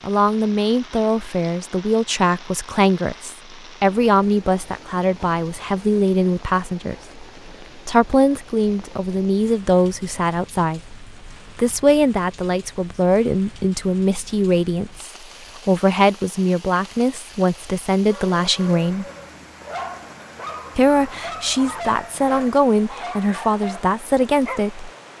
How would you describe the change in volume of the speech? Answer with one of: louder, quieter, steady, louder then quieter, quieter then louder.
steady.